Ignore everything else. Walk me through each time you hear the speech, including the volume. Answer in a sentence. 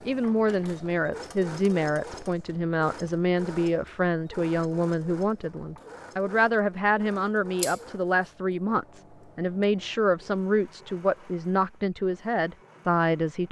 The speech can be heard from 0.0 to 13.4 s, at a steady volume.